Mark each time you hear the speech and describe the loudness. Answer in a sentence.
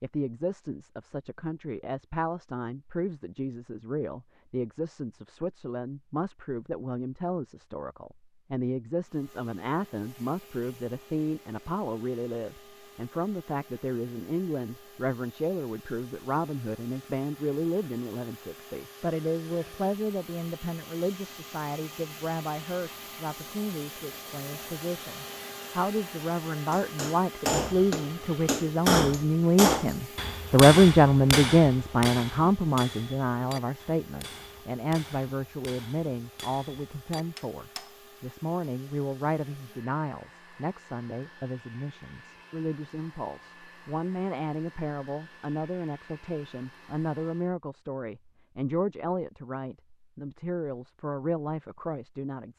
The speech can be heard from 0.0 to 52.5 s, getting louder then quieter.